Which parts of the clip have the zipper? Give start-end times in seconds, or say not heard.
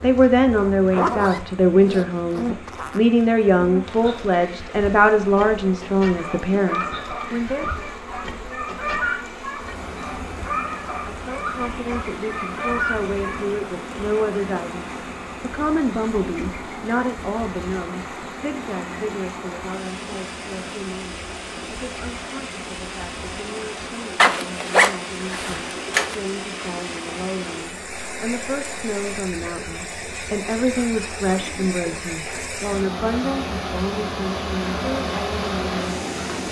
0.9-3.0, 24.1-26.1.